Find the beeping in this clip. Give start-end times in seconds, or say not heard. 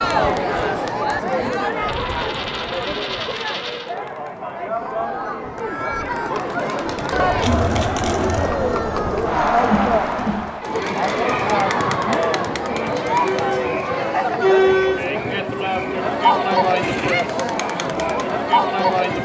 not heard.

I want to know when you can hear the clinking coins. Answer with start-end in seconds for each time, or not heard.
1.9-4.0, 7.4-8.5, 16.8-17.3.